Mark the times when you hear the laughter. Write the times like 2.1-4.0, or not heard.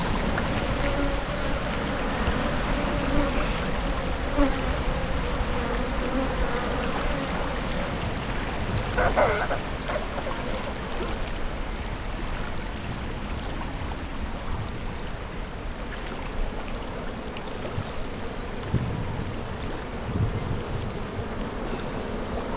8.8-10.3.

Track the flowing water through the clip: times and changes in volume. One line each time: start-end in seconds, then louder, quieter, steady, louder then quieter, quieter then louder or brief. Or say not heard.
0.0-22.5 quieter.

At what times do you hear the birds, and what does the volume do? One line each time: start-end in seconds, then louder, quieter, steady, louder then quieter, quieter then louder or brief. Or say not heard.
not heard.